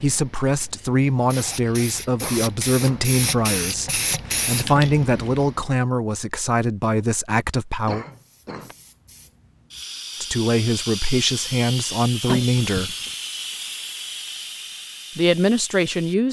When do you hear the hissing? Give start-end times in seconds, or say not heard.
0.0-5.6, 8.1-16.2.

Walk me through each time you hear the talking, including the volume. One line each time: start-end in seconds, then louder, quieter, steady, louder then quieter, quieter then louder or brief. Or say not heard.
0.0-8.1 steady
10.2-12.9 brief
15.2-16.2 brief.